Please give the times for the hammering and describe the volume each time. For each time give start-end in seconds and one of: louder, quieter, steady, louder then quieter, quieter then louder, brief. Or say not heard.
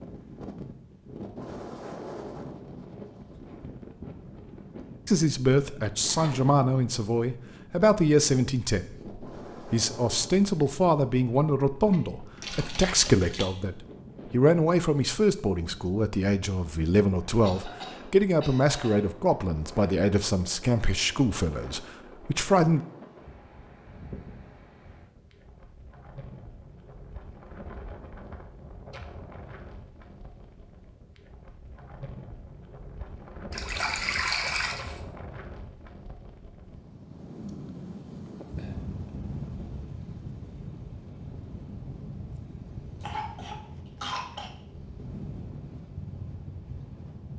not heard.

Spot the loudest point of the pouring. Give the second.
34 s.